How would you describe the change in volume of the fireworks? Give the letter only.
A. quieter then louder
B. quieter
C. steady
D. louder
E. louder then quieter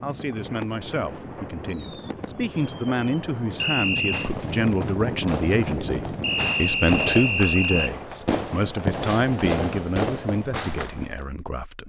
D.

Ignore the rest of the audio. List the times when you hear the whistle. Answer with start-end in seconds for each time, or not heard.
3.5-4.3, 6.2-8.0.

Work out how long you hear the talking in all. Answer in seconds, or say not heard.
12 s.